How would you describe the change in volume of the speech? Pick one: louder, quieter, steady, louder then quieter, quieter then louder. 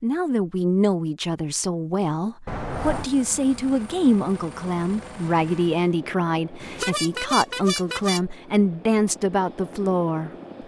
steady.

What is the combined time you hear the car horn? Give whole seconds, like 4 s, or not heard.
2 s.